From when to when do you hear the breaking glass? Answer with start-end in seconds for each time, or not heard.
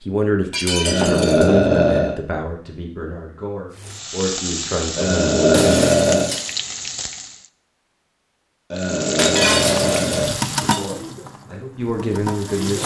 0.5-1.5, 5.5-6.5, 9.2-10.9.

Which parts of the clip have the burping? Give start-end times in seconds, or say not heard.
0.8-2.1, 5.0-6.3, 8.7-10.3.